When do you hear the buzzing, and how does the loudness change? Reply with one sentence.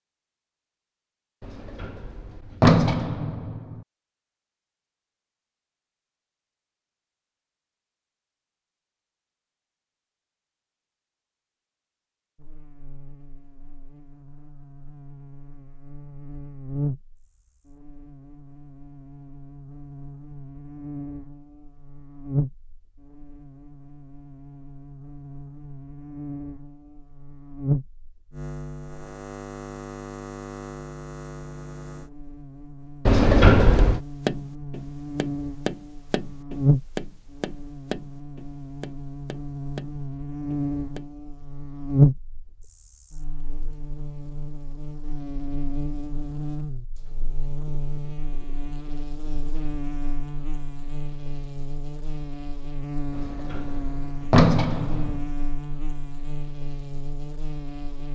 You can hear the buzzing from 12.3 to 58.0 s, getting louder then quieter.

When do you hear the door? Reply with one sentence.
The door can be heard from 1.4 to 3.8 s, from 33.0 to 34.0 s and from 53.1 to 55.2 s.